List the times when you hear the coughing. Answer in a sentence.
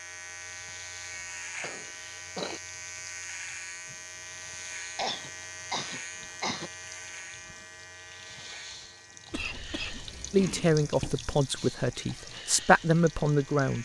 You can hear the coughing from 1.6 to 2.6 s, from 5.0 to 6.7 s and from 9.3 to 11.2 s.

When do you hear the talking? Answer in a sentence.
You can hear the talking from 10.3 to 13.8 s.